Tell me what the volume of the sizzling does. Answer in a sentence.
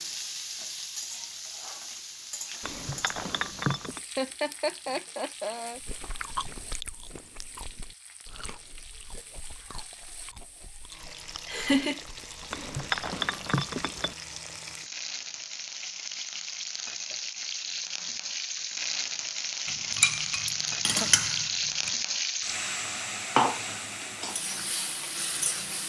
The volume of the sizzling goes down, then up.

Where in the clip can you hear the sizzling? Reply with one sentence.
The sizzling can be heard from 0.0 to 25.8 s.